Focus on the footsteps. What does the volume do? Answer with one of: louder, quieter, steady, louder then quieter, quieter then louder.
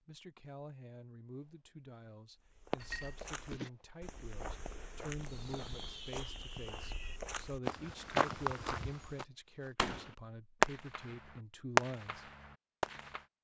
louder.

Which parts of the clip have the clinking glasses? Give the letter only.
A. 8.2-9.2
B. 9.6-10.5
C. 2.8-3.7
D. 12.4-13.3
C.